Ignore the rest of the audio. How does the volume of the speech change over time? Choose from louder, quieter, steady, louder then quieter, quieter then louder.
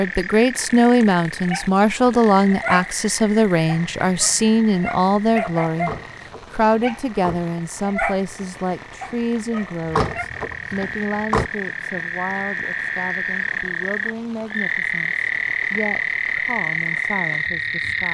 quieter.